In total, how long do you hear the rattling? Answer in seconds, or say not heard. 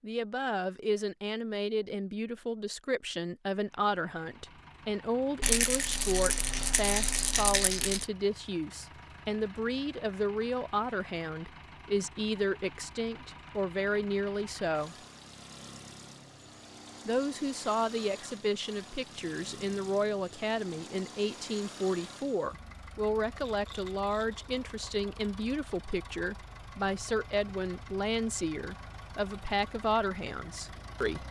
4 s.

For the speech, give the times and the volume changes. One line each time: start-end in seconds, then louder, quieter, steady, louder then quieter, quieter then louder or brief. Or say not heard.
0.0-14.9 steady
17.1-31.2 steady.